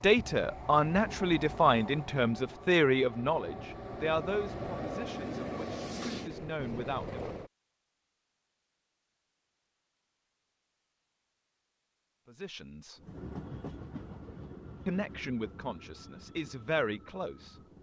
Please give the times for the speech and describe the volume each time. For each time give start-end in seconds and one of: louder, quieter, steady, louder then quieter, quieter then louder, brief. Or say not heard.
0.0-7.2 quieter
12.2-13.0 brief
14.8-17.6 brief.